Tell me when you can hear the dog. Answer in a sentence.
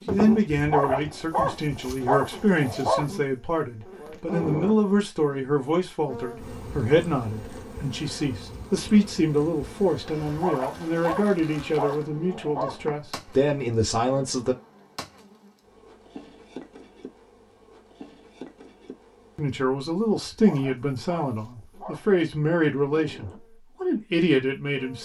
The dog can be heard from 0.6 to 3.0 s, from 10.2 to 12.9 s and from 20.2 to 22.1 s.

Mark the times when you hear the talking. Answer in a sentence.
You can hear the talking from 0.1 to 14.6 s and from 19.4 to 25.0 s.